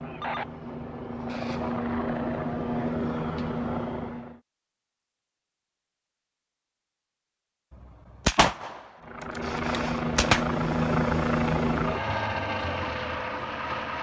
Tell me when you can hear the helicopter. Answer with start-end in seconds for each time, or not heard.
0.0-4.4, 9.0-13.9.